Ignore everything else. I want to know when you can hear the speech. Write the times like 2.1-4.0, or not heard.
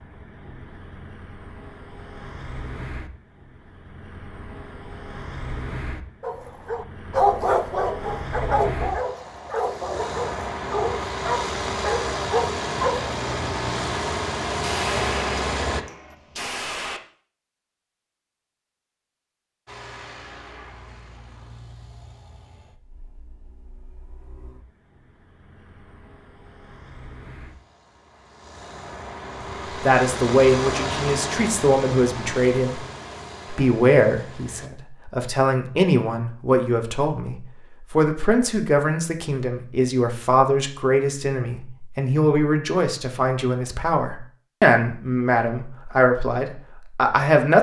29.8-32.8, 33.5-47.5.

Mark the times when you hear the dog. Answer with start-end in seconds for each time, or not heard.
6.2-13.1.